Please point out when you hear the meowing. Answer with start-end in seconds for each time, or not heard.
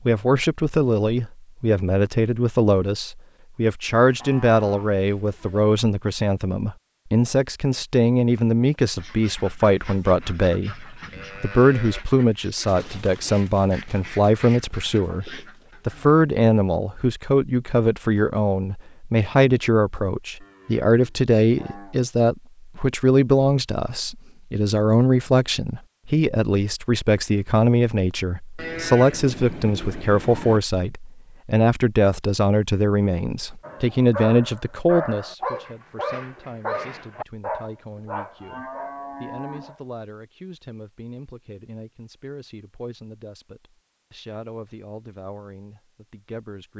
not heard.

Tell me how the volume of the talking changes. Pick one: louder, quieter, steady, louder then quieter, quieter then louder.
quieter.